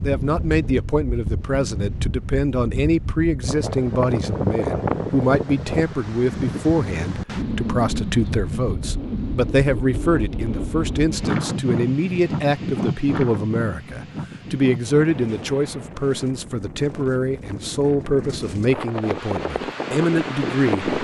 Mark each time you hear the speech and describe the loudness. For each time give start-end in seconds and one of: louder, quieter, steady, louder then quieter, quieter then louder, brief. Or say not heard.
0.0-20.9 steady.